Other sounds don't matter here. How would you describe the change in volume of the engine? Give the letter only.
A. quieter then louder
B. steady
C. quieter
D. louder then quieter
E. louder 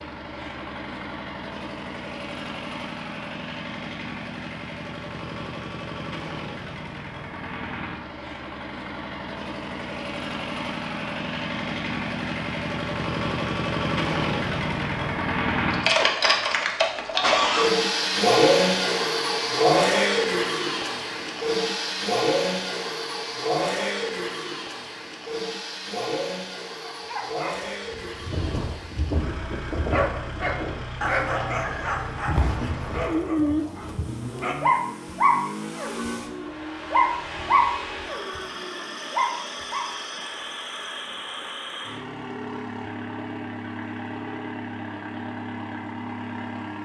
D.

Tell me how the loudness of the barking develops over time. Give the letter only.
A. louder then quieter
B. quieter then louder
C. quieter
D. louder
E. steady
D.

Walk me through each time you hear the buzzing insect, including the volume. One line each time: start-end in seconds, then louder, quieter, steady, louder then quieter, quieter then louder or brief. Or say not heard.
not heard.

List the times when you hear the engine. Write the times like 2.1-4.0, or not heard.
0.0-46.8.